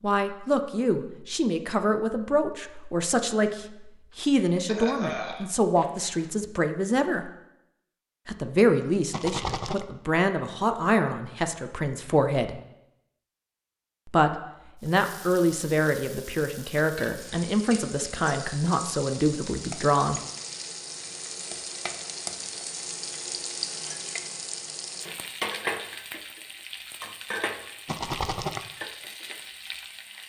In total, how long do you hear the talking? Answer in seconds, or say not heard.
18 s.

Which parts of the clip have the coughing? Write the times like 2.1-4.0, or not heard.
4.1-6.2.